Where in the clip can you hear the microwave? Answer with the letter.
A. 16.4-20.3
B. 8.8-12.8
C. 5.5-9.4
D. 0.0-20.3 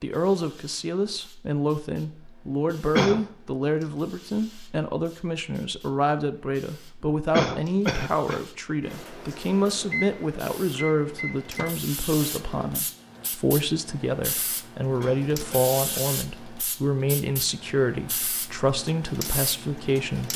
B.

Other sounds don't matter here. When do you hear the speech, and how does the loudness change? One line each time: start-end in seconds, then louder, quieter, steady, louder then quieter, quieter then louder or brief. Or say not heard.
0.0-20.3 steady.